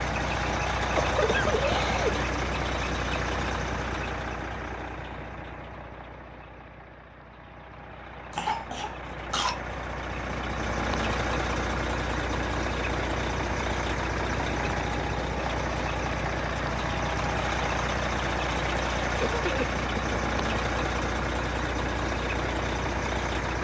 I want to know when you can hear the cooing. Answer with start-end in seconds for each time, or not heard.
not heard.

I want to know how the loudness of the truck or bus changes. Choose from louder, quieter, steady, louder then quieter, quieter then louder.
quieter then louder.